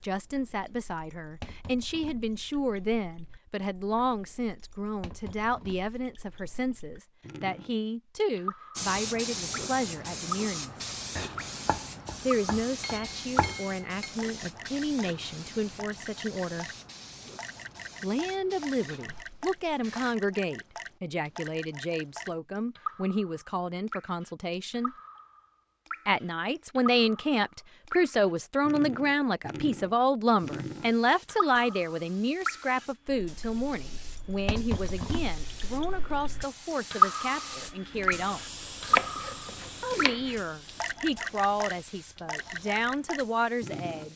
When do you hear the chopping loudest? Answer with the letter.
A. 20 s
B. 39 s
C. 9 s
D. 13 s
B.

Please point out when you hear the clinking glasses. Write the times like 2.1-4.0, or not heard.
12.8-14.2.